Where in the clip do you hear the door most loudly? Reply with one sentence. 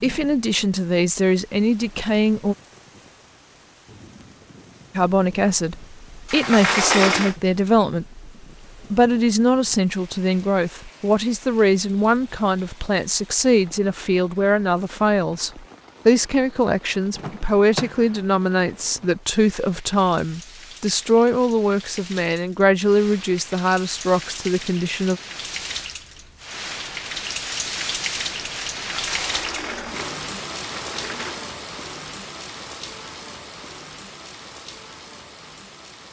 The loudest moment of the door is at 7 seconds.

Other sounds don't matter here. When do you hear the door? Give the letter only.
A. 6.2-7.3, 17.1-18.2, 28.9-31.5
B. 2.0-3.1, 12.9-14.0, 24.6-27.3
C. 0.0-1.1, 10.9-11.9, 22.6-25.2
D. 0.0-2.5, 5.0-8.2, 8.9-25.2
A.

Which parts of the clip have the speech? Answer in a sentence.
You can hear the speech from 0.0 to 2.5 s, from 5.0 to 8.2 s and from 8.9 to 25.2 s.